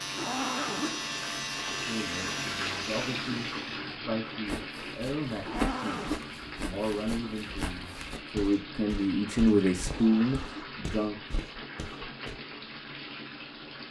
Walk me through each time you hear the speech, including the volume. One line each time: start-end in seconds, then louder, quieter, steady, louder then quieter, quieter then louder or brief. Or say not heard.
1.7-11.4 louder.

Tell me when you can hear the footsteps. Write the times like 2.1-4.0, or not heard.
4.5-12.3.